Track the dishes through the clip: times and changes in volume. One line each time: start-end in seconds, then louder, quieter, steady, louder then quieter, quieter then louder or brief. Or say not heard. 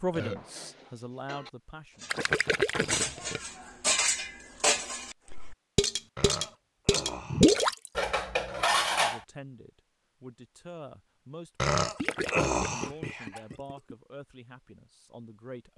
0.3-9.2 louder.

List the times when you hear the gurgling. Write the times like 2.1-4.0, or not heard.
2.1-3.4, 7.3-7.9, 11.9-13.9.